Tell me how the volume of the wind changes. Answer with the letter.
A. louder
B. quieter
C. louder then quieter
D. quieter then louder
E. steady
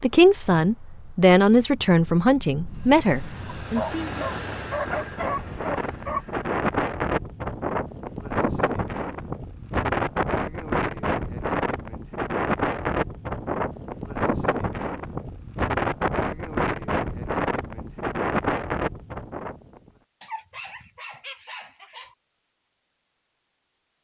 A.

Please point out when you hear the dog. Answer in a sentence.
The dog can be heard from 3.6 to 6.2 s and from 20.2 to 22.1 s.